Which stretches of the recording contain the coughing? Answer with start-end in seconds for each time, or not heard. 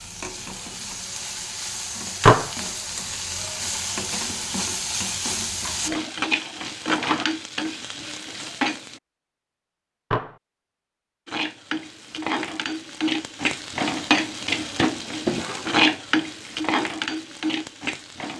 not heard.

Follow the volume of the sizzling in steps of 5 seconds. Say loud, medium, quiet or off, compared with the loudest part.
medium, loud, loud, loud.